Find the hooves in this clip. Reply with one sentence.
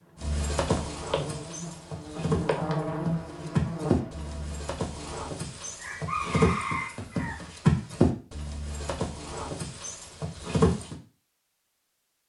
You can hear the hooves from 0.1 to 10.9 s.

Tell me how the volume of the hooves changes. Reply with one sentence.
The volume of the hooves goes up, then down.